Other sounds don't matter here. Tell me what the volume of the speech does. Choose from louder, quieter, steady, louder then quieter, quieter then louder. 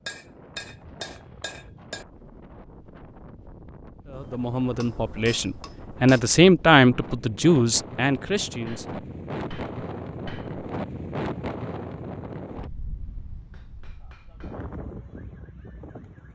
louder then quieter.